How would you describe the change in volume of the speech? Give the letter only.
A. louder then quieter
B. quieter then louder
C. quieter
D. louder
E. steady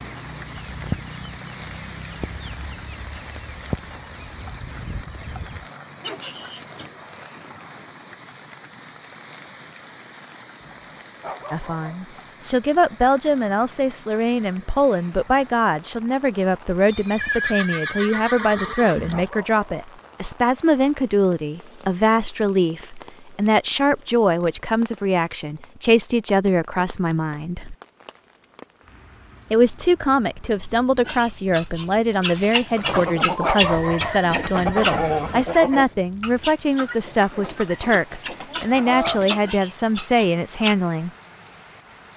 E.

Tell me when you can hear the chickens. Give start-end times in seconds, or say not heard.
0.0-6.9, 31.1-40.8.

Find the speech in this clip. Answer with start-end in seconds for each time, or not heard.
11.5-27.8, 29.5-41.1.